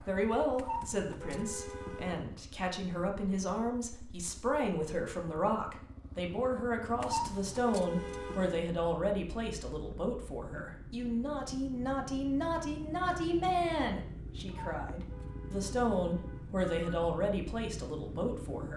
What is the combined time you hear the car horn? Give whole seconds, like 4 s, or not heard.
6 s.